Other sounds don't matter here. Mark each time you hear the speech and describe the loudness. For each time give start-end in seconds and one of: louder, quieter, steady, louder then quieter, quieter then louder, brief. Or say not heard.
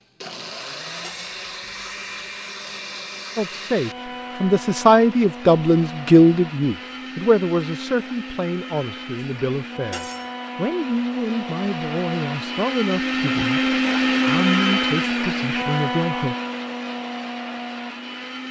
3.4-16.4 quieter.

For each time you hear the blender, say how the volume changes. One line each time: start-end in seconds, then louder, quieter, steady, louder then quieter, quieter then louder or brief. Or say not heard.
0.0-18.4 louder.